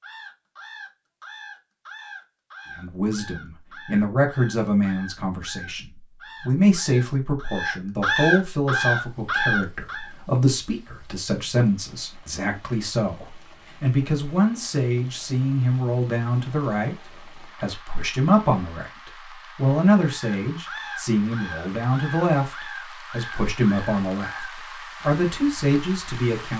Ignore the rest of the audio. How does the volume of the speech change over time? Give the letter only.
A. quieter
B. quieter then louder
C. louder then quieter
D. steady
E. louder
D.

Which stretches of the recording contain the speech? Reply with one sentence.
The speech can be heard from 2.8 to 26.5 s.